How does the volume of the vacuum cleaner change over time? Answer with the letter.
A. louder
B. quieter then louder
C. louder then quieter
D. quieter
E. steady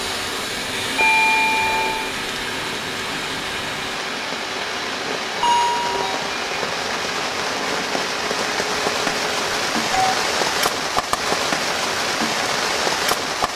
D.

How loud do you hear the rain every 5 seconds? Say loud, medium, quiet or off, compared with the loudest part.
medium, loud, loud.